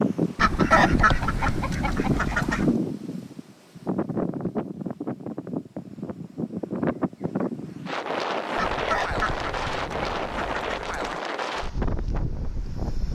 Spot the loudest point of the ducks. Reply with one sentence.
The volume of the ducks peaks at 1 second.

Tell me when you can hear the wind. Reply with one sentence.
You can hear the wind from 0.0 to 13.1 s.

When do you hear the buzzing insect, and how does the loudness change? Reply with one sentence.
The buzzing insect can't be heard in this clip.